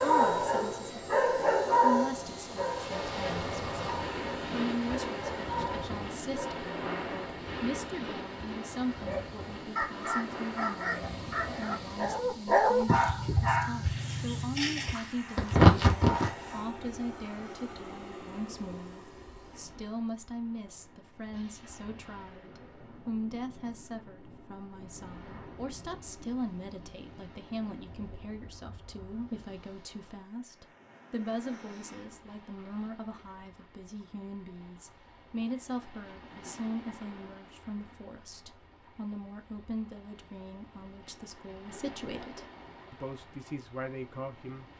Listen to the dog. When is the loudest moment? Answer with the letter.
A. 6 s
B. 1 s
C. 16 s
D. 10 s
C.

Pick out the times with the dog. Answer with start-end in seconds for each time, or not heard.
0.0-6.7, 8.9-16.6.